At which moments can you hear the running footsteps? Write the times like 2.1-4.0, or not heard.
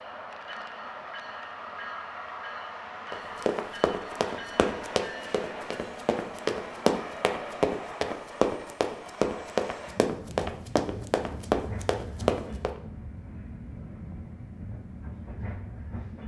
3.1-12.7.